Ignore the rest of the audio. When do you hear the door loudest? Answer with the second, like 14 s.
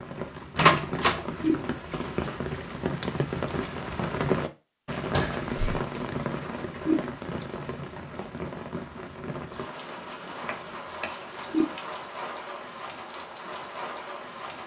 1 s.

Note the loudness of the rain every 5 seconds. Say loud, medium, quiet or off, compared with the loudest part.
loud, loud, medium.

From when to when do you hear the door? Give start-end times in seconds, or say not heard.
0.6-1.2, 5.1-5.8, 10.4-11.1.